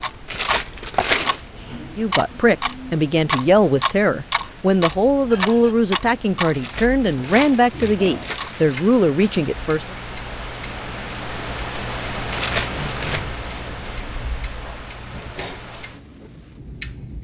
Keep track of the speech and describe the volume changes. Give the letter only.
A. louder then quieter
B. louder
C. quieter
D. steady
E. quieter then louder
D.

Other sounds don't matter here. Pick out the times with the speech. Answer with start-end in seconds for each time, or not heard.
1.9-9.9.